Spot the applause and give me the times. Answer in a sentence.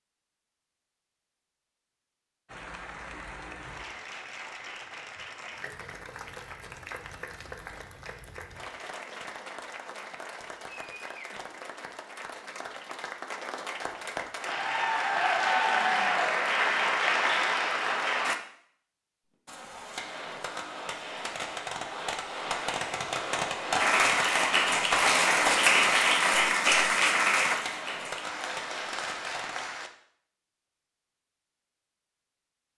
The applause can be heard from 2.5 to 18.4 s and from 23.8 to 29.9 s.